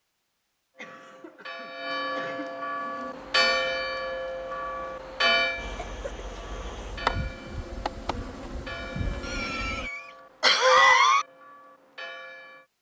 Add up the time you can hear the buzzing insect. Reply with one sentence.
The buzzing insect can be heard for 7 seconds in total.